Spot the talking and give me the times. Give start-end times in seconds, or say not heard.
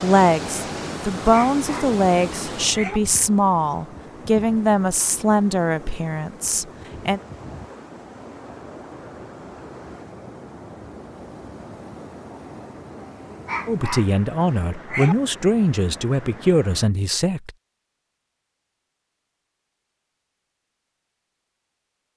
0.0-7.2, 13.7-17.5.